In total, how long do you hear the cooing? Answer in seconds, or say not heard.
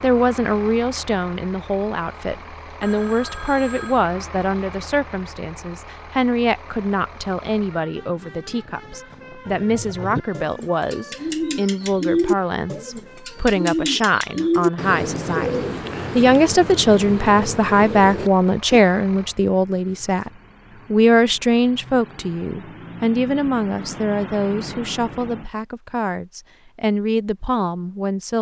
9 s.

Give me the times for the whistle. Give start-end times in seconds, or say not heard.
not heard.